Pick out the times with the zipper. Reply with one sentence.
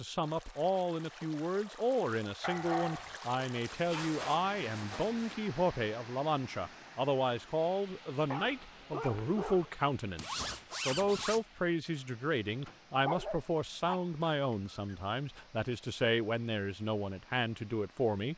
The zipper can be heard from 3.6 to 5.2 s and from 10.2 to 11.4 s.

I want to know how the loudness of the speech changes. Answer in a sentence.
The volume of the speech stays about the same.